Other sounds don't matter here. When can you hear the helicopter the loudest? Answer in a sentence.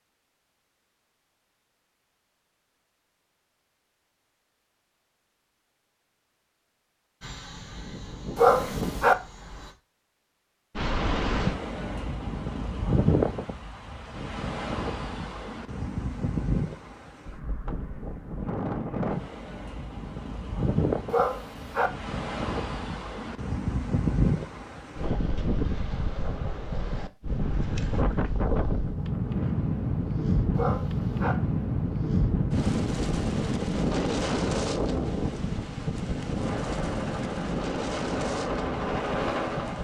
The volume of the helicopter peaks at 39 seconds.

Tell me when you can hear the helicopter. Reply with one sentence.
The helicopter can be heard from 7.2 to 9.8 s and from 36.4 to 39.7 s.